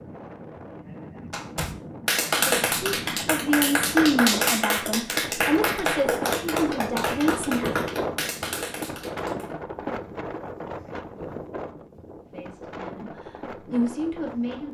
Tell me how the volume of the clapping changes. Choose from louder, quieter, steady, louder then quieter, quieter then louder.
quieter.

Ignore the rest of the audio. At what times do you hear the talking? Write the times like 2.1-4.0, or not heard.
2.4-7.8, 12.3-14.6.